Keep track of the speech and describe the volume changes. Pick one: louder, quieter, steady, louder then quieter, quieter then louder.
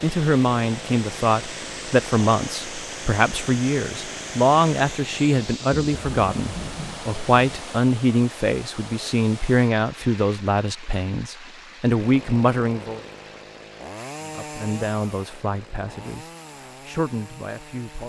quieter.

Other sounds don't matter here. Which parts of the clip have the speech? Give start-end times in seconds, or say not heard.
0.0-13.0, 14.3-18.0.